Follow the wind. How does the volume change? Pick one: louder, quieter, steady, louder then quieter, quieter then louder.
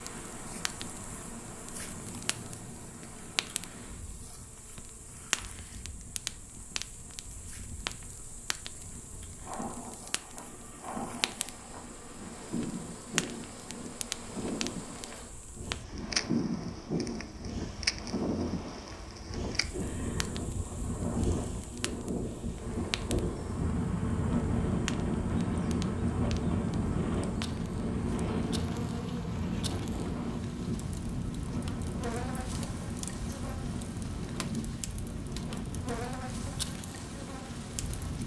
louder then quieter.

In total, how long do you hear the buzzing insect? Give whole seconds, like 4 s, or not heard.
38 s.